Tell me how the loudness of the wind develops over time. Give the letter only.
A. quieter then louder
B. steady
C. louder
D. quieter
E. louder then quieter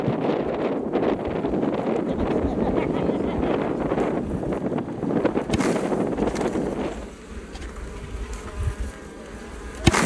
B.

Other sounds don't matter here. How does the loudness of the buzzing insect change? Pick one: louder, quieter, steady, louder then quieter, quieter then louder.
louder.